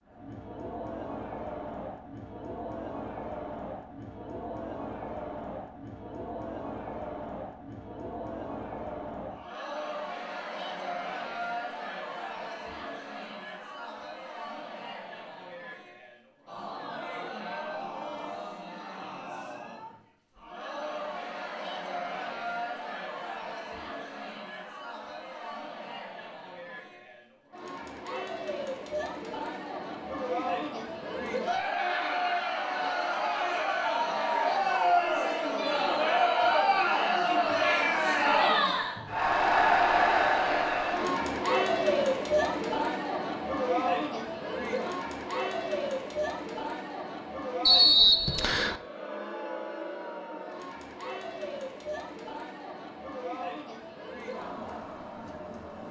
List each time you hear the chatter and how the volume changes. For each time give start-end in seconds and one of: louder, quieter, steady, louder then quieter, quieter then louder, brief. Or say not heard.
0.1-55.8 louder then quieter.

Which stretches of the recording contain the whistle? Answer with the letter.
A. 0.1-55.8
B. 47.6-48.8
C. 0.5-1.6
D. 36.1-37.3
B.